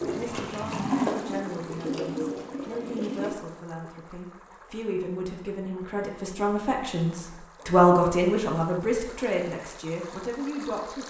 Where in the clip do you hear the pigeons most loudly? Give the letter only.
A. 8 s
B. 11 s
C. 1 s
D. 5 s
C.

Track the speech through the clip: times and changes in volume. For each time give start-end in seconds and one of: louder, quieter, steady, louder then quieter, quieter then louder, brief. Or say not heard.
0.1-11.0 louder then quieter.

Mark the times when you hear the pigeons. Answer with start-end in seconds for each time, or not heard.
0.0-3.4.